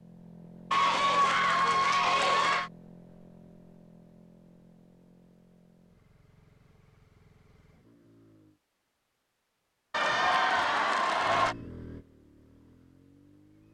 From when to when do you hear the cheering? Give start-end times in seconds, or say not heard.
0.7-2.7, 9.9-11.6.